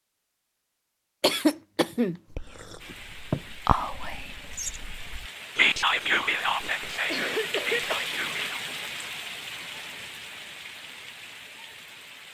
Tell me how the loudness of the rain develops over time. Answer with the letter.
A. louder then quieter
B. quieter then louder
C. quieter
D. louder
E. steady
A.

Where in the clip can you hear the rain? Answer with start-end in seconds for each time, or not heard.
2.8-12.2.